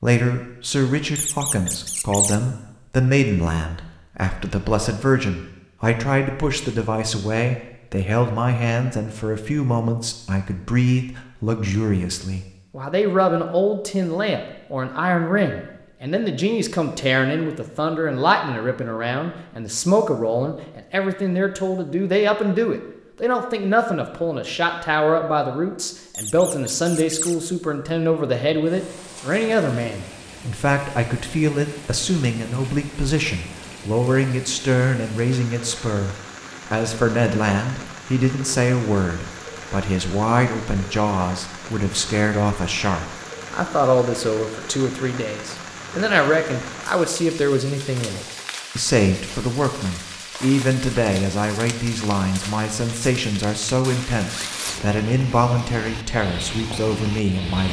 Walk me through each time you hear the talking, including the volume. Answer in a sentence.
You can hear the talking from 0.0 to 57.6 s, at a steady volume.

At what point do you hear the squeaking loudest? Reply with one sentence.
The loudest moment of the squeaking is at 2 seconds.